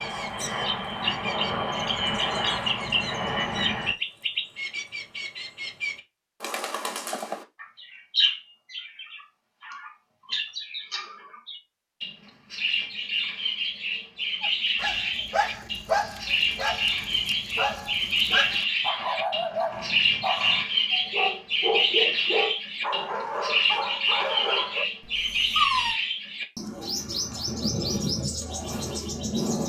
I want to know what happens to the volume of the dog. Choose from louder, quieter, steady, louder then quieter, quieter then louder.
steady.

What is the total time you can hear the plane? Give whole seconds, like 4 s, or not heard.
4 s.